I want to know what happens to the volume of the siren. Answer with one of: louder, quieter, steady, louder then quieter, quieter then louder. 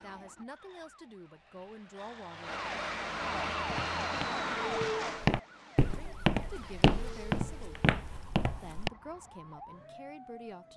louder then quieter.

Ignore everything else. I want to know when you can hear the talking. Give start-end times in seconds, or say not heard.
0.0-2.6, 5.8-7.8, 8.6-10.7.